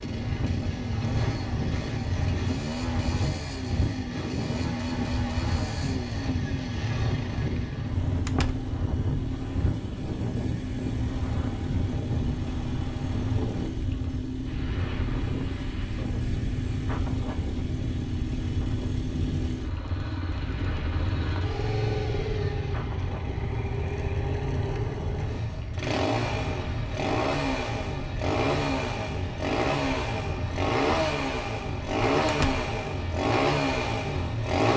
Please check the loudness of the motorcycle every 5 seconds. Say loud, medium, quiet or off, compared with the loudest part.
medium, medium, medium, medium, medium, loud, loud.